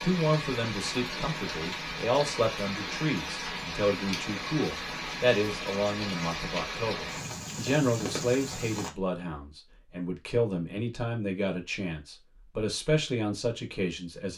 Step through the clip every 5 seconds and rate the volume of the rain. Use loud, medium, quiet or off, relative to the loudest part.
loud, loud, off.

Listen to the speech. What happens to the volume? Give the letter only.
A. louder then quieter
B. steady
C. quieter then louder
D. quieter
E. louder
B.